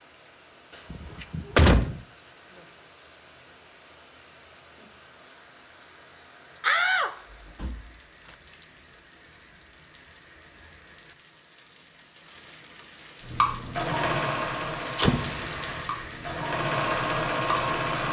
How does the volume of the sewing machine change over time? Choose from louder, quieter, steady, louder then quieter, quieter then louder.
quieter then louder.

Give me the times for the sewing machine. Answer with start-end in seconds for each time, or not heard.
13.2-18.0.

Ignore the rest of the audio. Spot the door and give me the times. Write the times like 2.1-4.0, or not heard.
0.9-2.0, 6.6-7.8, 14.3-15.4.